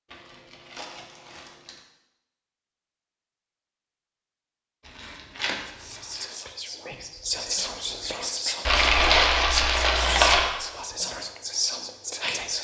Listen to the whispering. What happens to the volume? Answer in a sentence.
The loudness of the whispering goes up.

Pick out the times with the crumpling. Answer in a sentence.
The crumpling can be heard from 0.1 to 1.8 s, from 4.8 to 6.2 s and from 8.7 to 10.5 s.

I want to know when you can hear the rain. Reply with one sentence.
You can't hear the rain here.